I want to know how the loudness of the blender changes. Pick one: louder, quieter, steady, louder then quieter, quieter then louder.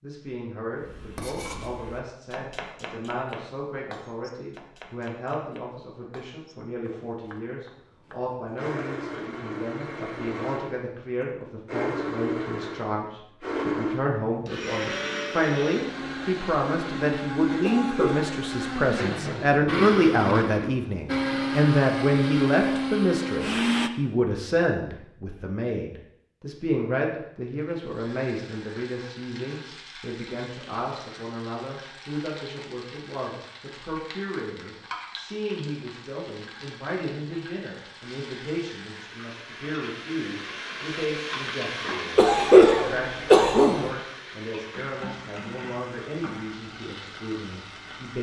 louder.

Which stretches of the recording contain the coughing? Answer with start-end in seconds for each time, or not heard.
17.6-18.4, 42.1-43.9.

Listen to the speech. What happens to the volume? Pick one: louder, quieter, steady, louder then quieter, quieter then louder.
louder then quieter.